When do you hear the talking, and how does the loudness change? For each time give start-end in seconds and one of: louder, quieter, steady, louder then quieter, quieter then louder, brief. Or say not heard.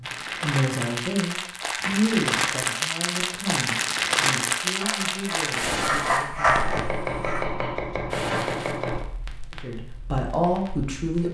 0.0-6.7 quieter
9.6-11.2 brief.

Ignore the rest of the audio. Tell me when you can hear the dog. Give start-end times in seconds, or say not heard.
4.8-7.5.